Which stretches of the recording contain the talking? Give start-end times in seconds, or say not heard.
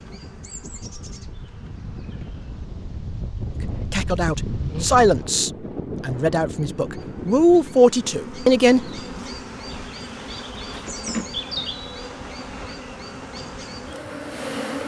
3.6-9.0.